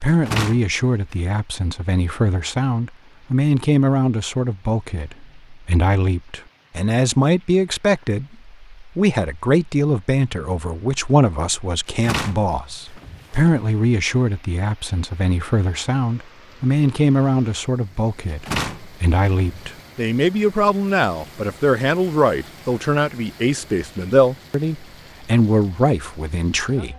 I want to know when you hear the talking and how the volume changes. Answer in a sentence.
You can hear the talking from 0.0 to 26.9 s, at a steady volume.